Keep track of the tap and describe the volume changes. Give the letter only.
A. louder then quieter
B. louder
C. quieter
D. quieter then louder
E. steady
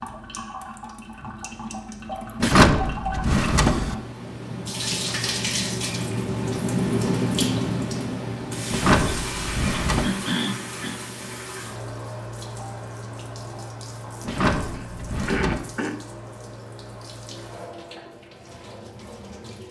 A.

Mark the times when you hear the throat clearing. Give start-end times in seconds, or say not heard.
2.2-2.7, 10.0-10.9, 14.7-16.0.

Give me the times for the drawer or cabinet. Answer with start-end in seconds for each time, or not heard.
2.4-4.0, 8.7-10.1, 14.2-15.6.